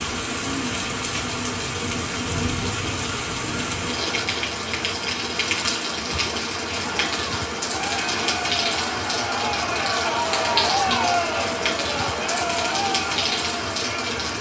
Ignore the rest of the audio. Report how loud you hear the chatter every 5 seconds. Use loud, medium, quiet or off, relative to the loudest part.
off, loud, loud.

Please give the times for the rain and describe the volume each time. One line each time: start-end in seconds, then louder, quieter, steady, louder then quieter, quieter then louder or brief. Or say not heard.
0.0-14.3 steady.